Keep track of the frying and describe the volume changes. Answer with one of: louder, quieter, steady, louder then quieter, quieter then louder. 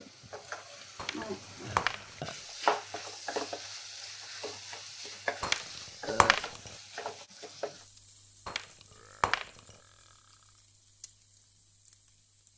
quieter.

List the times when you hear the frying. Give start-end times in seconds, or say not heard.
0.0-12.5.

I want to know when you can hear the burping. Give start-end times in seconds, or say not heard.
1.2-2.4, 6.0-6.5, 8.8-10.7.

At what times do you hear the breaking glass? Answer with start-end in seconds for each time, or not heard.
0.9-2.2, 5.4-6.7, 8.4-9.8.